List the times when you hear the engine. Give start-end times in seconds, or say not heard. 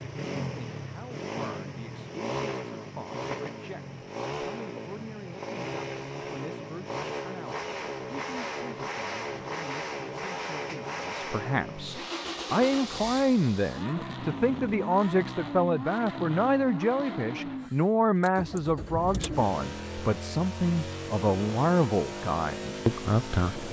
0.0-23.6.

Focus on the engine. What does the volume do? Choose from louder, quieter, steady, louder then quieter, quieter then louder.
steady.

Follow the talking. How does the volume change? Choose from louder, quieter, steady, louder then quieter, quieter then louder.
louder.